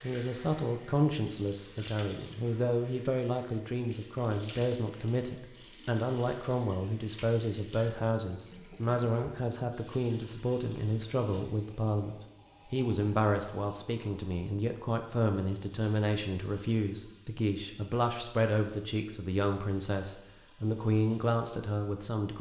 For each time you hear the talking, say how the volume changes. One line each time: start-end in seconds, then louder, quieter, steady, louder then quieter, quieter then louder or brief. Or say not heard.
0.0-22.3 steady.